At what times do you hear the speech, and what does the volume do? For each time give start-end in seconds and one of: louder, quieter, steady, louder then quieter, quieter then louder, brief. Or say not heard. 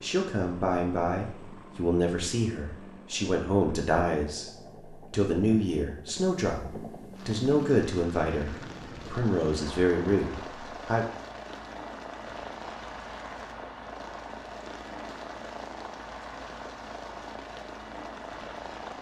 0.0-11.1 steady.